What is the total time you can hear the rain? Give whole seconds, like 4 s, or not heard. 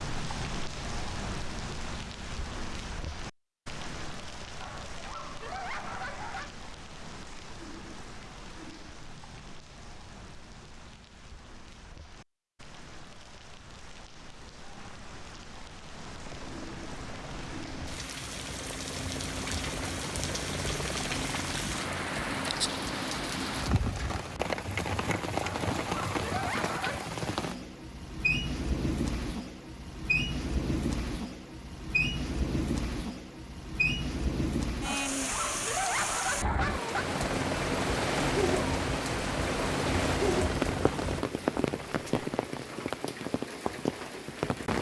45 s.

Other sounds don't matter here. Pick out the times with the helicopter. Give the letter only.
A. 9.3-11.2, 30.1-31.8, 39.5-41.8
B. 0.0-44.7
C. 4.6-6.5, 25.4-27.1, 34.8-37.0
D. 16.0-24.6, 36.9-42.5
D.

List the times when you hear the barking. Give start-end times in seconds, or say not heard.
4.6-6.5, 25.4-27.1, 34.8-37.0.